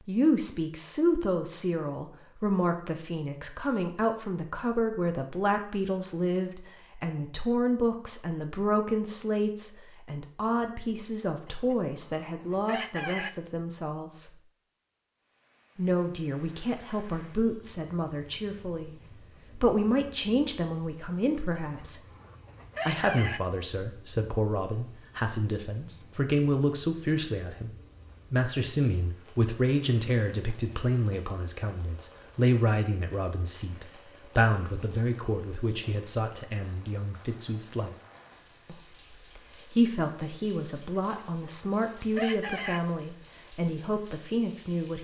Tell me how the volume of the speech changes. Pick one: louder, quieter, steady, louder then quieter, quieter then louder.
steady.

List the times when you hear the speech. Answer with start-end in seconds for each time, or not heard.
0.1-14.3, 15.8-22.0, 22.9-38.0, 38.6-44.9.